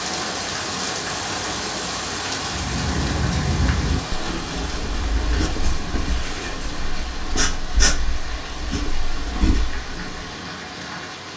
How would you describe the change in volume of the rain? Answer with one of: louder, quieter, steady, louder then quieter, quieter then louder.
quieter.